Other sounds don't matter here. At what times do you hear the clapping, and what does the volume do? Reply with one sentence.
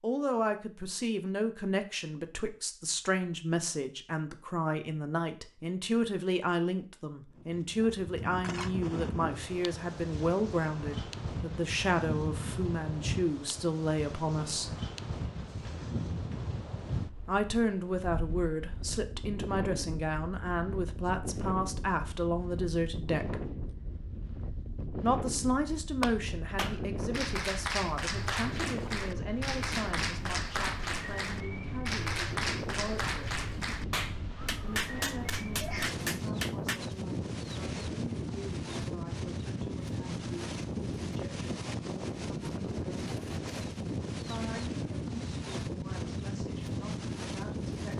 You can hear the clapping from 26.0 to 36.8 s, at a steady volume.